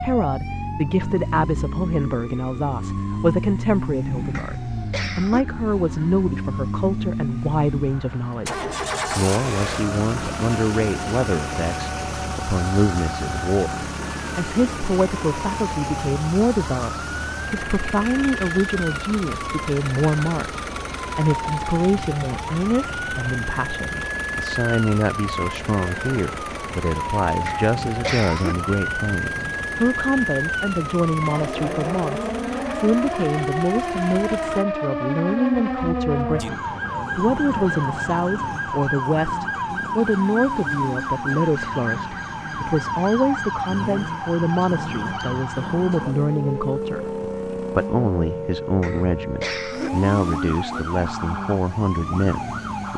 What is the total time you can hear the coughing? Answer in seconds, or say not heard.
3 s.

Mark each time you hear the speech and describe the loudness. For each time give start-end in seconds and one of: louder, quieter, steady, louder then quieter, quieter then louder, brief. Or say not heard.
0.0-52.9 steady.